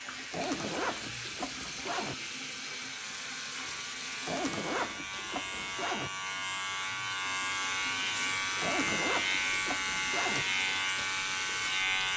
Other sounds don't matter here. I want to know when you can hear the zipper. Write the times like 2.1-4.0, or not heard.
0.3-2.1, 4.2-6.1, 8.6-10.4.